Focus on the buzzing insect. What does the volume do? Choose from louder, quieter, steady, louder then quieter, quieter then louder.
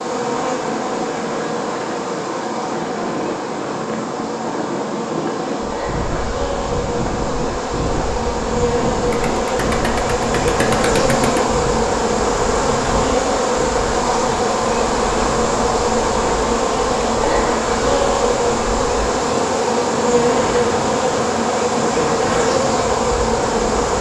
louder.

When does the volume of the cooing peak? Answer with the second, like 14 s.
11 s.